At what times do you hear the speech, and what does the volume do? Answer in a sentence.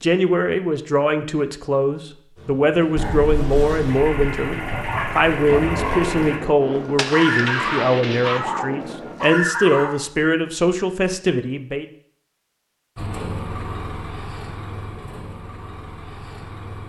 The speech can be heard from 0.0 to 11.8 s, at a steady volume.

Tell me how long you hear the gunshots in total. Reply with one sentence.
The gunshots can be heard for 4 seconds in total.